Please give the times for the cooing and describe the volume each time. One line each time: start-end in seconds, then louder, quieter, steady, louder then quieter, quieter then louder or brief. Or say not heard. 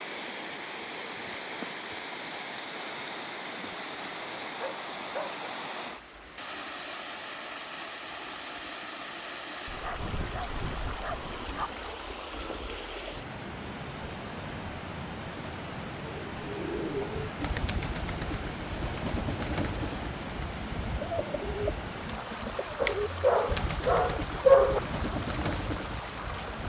16.2-26.6 steady.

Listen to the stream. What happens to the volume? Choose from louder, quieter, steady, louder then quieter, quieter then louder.
steady.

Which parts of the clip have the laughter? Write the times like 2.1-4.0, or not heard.
not heard.